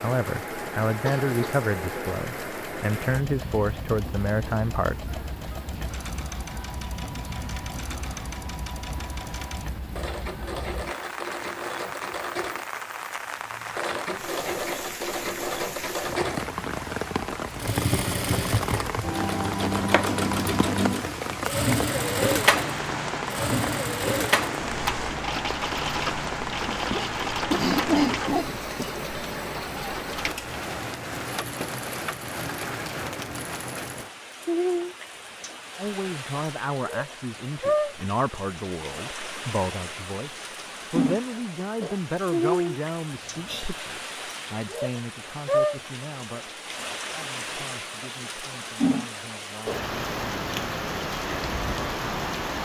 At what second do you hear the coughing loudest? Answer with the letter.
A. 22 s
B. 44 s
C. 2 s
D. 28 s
D.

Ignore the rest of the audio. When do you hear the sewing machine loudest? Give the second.
22 s.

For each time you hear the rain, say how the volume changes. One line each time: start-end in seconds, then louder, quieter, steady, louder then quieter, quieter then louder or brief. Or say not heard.
0.0-52.6 louder.